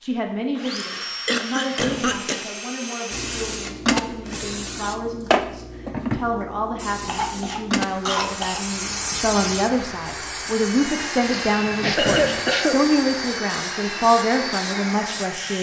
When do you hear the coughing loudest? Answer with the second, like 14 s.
12 s.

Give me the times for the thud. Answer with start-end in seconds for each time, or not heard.
1.8-2.2, 12.1-12.5.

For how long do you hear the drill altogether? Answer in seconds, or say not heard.
13 s.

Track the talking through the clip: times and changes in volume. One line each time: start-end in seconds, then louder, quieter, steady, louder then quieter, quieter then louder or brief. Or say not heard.
0.0-15.5 louder.